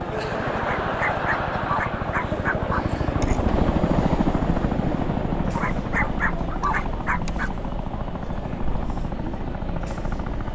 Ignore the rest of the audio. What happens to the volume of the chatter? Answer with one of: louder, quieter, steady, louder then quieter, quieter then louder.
quieter.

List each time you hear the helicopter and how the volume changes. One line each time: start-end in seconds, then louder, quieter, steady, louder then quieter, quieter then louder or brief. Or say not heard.
0.0-10.4 louder then quieter.